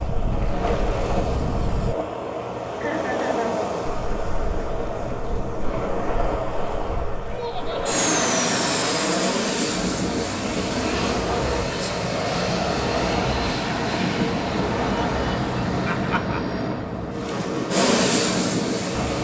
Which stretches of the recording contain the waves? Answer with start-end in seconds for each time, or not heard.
0.0-19.1.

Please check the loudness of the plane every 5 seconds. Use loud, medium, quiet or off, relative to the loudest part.
medium, loud, loud, loud.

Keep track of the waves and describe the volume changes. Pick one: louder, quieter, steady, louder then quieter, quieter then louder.
steady.